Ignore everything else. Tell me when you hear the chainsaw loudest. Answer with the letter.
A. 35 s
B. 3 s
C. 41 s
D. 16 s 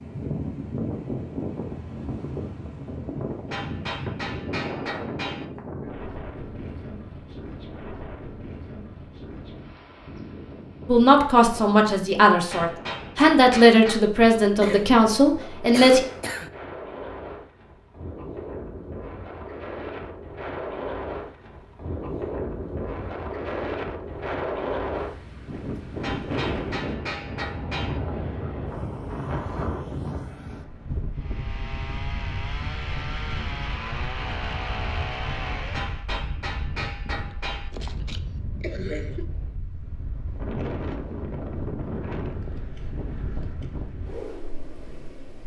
A.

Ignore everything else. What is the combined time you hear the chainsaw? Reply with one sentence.
You can hear the chainsaw for 5 seconds altogether.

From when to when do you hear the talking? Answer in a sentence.
You can hear the talking from 10.8 to 16.0 s.